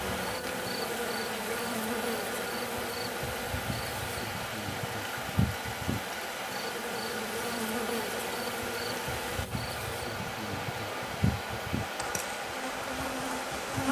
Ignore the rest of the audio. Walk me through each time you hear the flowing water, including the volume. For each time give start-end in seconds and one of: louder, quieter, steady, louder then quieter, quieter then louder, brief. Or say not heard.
0.0-13.8 steady.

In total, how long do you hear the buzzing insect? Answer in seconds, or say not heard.
14 s.